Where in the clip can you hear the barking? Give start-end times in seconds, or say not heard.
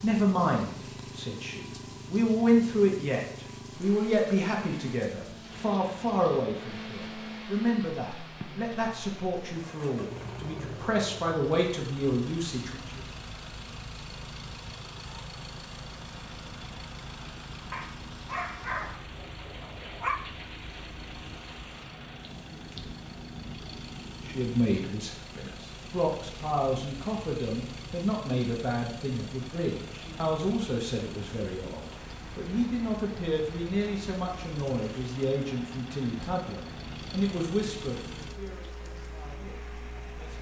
17.7-20.2.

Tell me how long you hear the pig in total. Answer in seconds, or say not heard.
not heard.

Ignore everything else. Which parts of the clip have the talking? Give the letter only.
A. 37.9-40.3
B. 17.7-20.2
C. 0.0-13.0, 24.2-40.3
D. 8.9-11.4
C.